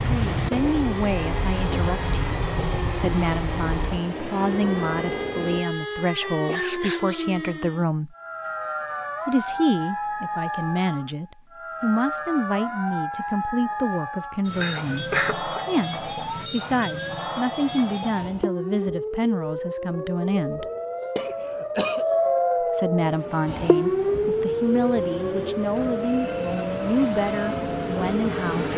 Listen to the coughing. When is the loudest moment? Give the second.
15 s.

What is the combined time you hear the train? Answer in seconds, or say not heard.
11 s.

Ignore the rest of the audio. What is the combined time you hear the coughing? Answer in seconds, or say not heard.
3 s.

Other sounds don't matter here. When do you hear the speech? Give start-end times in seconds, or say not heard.
0.1-8.2, 9.2-20.6, 22.6-28.7.